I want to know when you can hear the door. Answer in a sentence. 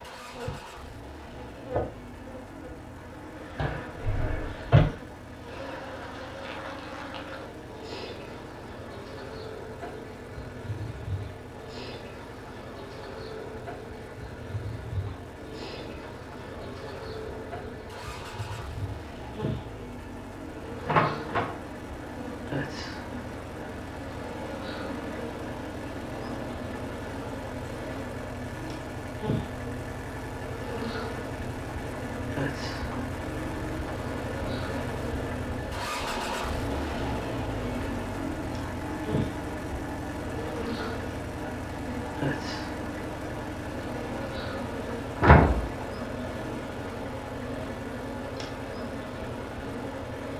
The door can be heard from 3.5 to 4.8 s, from 20.9 to 21.6 s and from 45.1 to 46.3 s.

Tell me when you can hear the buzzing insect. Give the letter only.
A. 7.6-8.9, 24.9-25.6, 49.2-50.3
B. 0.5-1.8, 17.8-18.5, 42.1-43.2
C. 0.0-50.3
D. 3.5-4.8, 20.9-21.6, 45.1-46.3
C.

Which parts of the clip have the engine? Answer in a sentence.
You can hear the engine from 0.0 to 50.3 s.